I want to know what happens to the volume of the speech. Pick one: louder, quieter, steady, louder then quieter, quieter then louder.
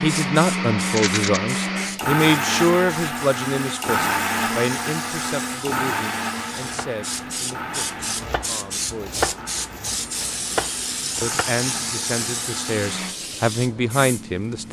quieter then louder.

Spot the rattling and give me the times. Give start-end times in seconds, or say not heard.
0.8-1.4.